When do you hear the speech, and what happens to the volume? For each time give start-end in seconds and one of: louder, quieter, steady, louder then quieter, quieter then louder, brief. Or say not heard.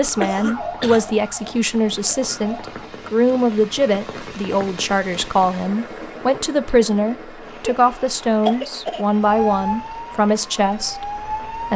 0.0-11.7 steady.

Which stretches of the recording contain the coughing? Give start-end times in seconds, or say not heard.
0.2-1.1, 7.7-9.1.